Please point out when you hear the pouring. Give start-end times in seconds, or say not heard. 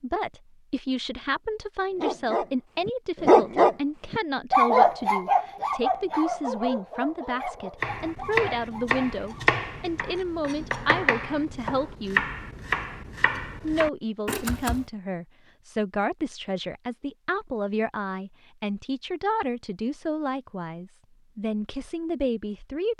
not heard.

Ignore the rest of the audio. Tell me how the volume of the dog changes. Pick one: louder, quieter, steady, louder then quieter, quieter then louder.
quieter.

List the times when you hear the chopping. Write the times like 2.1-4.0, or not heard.
7.8-14.8.